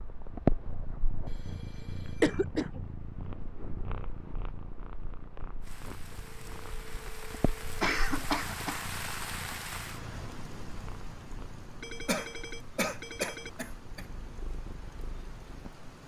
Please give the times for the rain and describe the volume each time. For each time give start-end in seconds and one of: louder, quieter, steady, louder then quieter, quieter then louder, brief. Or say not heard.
5.6-16.0 louder then quieter.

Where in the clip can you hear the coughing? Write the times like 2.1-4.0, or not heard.
2.2-2.8, 7.8-8.9, 12.1-14.1.